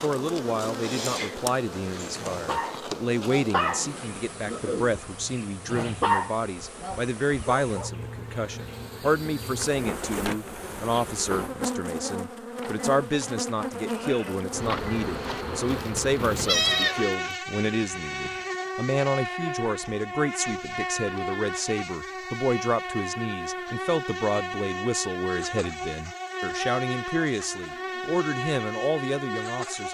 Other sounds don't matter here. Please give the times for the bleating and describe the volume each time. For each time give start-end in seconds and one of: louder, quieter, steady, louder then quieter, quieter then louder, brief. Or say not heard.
12.5-18.8 louder then quieter.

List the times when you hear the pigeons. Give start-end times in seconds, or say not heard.
not heard.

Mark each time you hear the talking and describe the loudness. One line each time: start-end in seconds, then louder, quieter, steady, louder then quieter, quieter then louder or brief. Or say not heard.
0.0-29.8 steady.